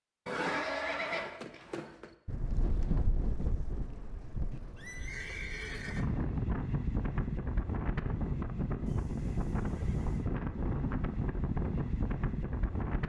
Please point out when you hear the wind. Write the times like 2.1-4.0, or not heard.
2.2-13.0.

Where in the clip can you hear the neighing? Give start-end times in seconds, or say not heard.
0.2-2.1, 4.5-6.0, 8.8-10.3.